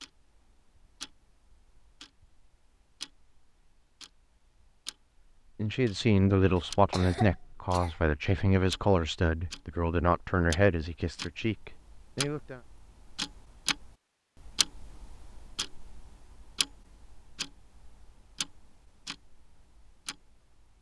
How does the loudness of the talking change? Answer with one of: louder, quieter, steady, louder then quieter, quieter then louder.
quieter.